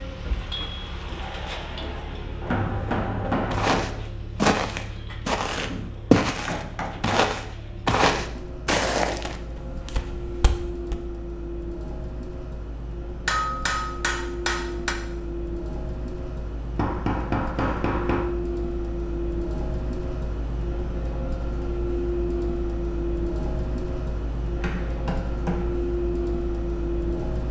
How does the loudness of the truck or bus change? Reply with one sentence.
The loudness of the truck or bus goes up.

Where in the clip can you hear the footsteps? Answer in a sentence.
The footsteps can be heard from 3.5 to 11.0 s.